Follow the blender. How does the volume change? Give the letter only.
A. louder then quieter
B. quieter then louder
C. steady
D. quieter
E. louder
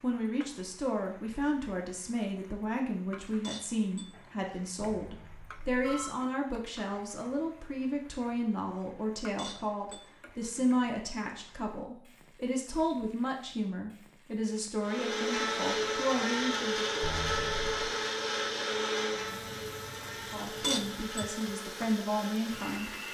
D.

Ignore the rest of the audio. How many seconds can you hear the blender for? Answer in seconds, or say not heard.
8 s.